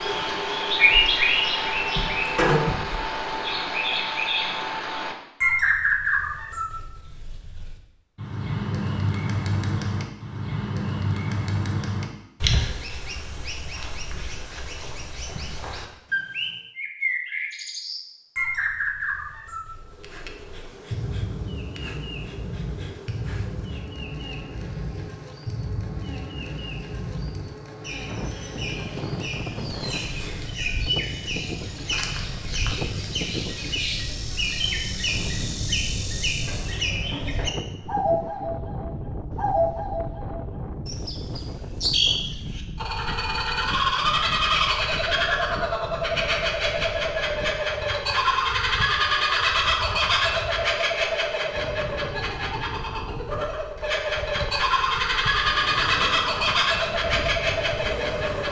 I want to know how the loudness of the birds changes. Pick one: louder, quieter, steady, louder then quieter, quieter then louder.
quieter then louder.